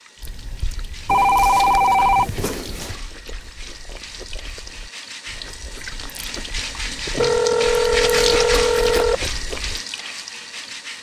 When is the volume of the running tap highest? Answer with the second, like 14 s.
8 s.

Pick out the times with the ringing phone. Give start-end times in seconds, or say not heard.
1.1-3.0, 7.2-9.2.